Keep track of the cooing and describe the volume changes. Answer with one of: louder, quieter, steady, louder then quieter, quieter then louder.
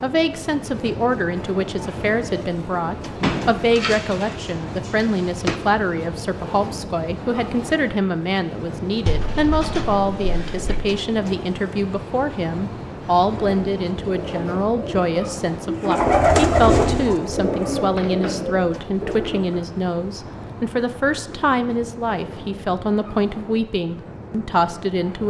louder then quieter.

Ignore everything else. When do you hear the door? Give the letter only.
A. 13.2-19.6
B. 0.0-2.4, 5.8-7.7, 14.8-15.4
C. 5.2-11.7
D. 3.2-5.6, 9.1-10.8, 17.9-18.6
D.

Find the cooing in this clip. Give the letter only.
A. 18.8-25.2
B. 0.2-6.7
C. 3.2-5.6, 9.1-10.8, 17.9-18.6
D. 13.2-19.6
D.